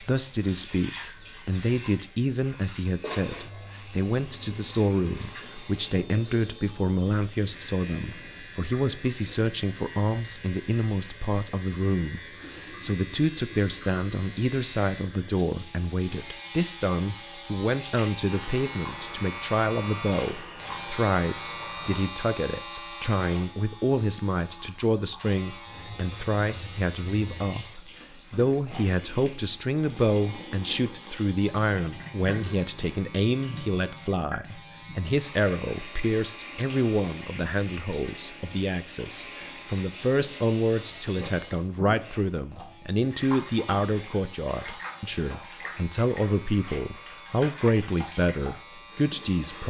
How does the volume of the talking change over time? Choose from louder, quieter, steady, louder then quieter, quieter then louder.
steady.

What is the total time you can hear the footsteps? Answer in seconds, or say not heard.
not heard.